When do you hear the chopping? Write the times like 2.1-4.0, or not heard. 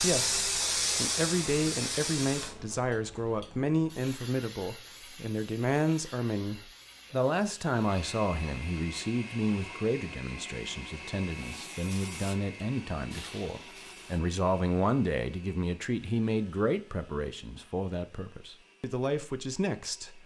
not heard.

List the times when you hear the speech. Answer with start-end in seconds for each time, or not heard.
0.0-20.2.